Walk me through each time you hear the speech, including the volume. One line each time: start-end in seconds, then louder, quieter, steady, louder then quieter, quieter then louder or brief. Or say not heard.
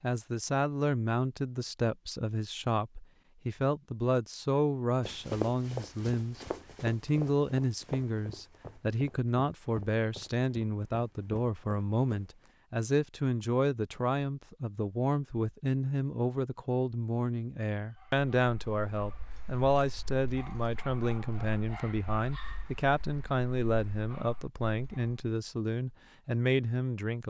0.0-27.2 steady.